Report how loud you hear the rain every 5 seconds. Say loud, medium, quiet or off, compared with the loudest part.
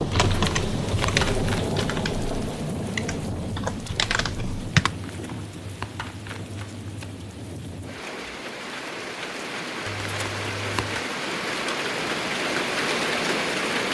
loud, medium, loud.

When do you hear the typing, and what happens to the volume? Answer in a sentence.
You can hear the typing from 0.0 to 5.0 s, getting quieter then louder.